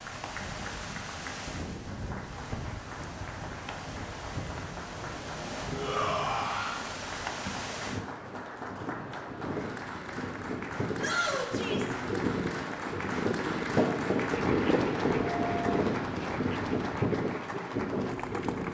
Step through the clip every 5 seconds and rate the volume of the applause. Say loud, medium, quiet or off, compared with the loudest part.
medium, loud, loud, loud.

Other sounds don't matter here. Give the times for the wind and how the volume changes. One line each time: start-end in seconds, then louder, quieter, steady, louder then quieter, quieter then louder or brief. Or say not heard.
0.0-18.6 louder.